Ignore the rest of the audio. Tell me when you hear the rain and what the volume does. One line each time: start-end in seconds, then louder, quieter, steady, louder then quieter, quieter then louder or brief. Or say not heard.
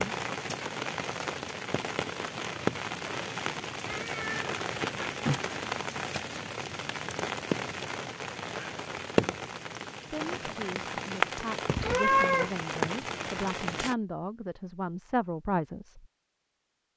0.0-13.9 steady.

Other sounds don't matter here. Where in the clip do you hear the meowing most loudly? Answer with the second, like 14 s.
12 s.